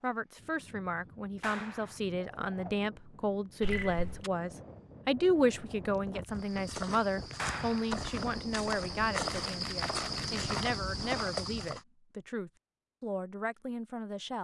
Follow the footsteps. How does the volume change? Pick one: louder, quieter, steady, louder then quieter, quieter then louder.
louder.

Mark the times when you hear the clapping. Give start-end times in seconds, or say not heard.
1.4-2.0, 7.3-8.0.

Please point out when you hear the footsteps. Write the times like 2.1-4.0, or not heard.
6.3-11.8.